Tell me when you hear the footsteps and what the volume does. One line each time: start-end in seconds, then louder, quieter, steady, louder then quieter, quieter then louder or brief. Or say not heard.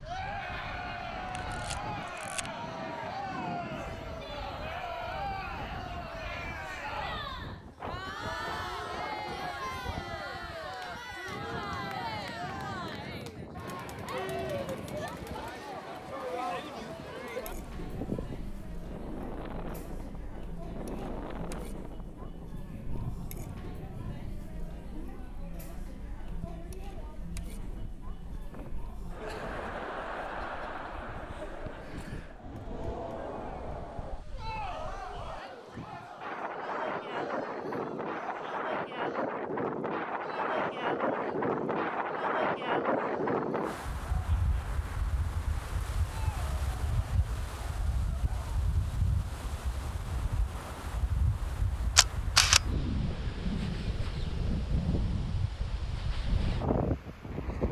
not heard.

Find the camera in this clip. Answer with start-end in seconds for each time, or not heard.
1.4-2.5, 52.0-52.6.